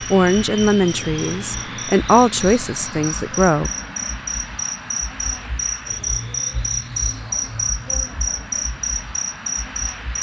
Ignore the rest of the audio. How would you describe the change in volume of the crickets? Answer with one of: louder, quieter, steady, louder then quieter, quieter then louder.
louder.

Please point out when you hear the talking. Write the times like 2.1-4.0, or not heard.
0.1-3.7.